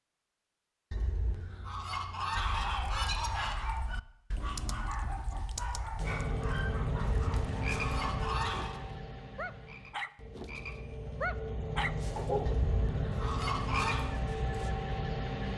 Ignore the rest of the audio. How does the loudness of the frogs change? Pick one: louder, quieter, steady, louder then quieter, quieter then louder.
quieter then louder.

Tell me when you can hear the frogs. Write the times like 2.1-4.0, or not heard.
6.0-15.5.